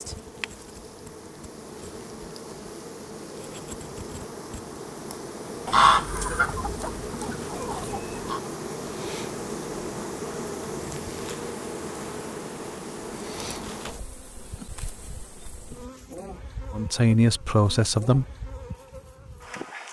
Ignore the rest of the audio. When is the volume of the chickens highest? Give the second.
6 s.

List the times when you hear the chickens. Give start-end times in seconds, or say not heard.
5.7-8.4.